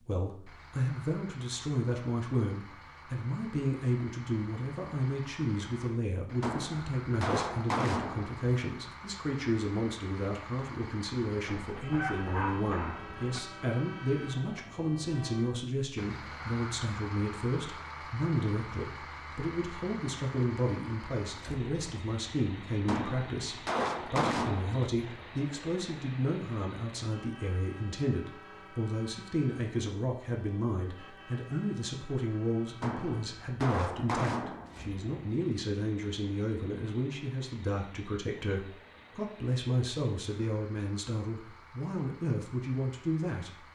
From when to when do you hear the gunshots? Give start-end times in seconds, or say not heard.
6.4-8.9, 22.9-24.9, 32.8-35.0.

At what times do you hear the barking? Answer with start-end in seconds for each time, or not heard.
11.4-13.4.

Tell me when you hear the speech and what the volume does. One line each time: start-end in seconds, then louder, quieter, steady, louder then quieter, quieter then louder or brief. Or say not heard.
0.1-43.6 steady.